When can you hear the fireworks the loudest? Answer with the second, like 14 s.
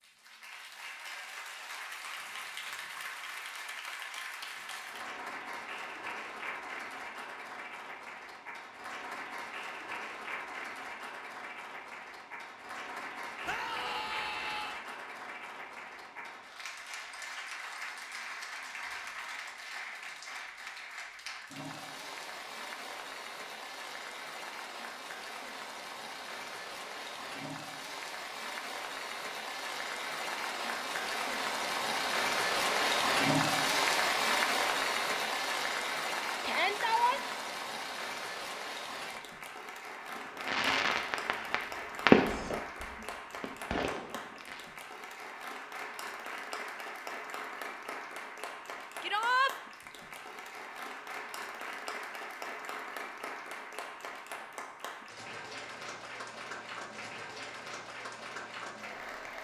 42 s.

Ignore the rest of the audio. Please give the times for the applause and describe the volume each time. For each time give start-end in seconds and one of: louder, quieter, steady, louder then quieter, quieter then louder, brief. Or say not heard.
0.0-59.3 louder then quieter.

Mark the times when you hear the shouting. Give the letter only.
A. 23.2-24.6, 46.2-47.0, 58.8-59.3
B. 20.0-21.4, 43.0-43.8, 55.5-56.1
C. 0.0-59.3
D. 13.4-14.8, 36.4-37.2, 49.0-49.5
D.